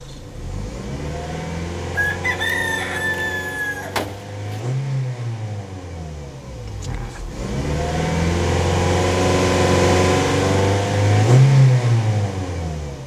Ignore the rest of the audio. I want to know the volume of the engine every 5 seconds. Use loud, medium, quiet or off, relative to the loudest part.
quiet, medium, loud.